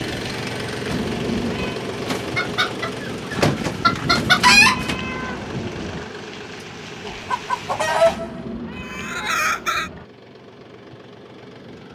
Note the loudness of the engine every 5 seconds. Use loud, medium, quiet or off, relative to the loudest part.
loud, medium, quiet.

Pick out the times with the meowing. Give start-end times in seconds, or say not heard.
0.8-1.8, 4.0-6.0, 8.1-10.1.